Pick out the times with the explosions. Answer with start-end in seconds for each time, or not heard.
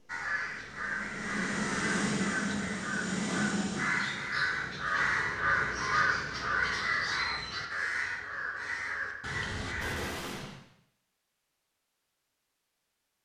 9.8-10.6.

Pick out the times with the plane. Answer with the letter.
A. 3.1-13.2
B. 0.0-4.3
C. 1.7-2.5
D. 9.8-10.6
B.